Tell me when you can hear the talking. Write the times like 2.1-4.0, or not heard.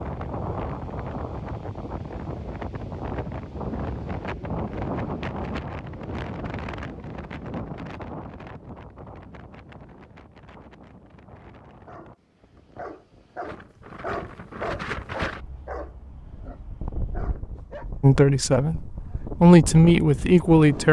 18.0-20.8.